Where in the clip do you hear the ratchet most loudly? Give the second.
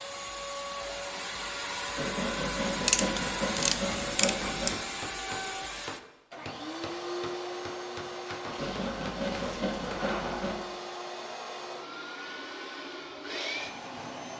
3 s.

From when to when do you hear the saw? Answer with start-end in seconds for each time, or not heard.
1.9-4.8, 8.6-10.6.